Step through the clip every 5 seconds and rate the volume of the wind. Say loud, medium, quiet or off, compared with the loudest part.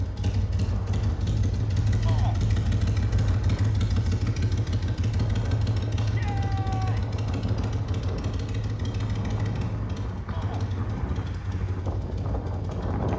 medium, loud, loud.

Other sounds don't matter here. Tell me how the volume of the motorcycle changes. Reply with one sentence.
The loudness of the motorcycle goes down.